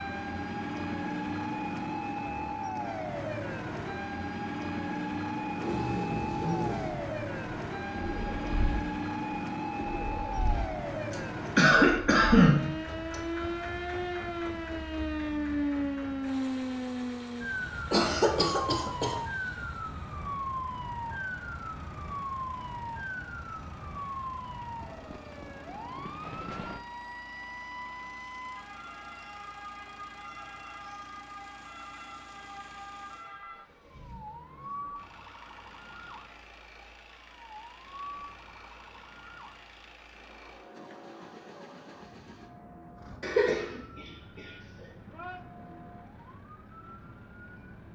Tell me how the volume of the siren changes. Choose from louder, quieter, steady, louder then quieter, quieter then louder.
quieter.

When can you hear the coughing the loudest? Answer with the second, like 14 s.
12 s.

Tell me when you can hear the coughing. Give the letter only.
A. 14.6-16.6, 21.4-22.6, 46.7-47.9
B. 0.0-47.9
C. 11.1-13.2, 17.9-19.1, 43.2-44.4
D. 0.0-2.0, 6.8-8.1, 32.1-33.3
C.